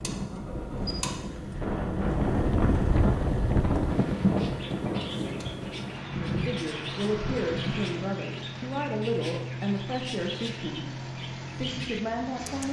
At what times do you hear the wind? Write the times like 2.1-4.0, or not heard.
0.0-8.0.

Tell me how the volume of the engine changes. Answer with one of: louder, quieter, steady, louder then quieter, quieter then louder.
steady.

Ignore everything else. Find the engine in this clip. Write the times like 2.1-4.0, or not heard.
0.0-12.6.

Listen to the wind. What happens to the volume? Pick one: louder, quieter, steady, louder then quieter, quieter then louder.
louder then quieter.